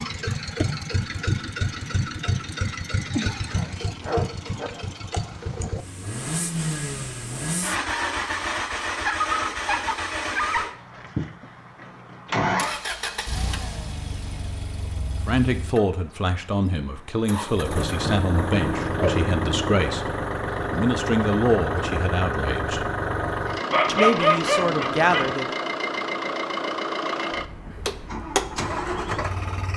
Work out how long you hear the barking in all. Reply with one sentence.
You can hear the barking for 6 seconds altogether.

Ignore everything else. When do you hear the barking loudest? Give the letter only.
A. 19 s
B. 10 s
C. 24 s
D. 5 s
C.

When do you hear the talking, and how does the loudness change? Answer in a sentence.
The talking can be heard from 15.2 to 22.9 s, at a steady volume; and briefly from 23.9 to 25.4 s.